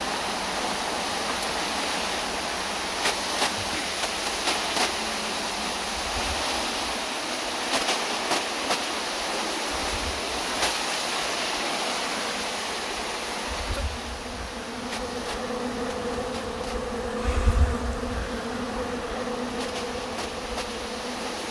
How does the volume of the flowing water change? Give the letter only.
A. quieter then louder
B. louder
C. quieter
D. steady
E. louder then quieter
C.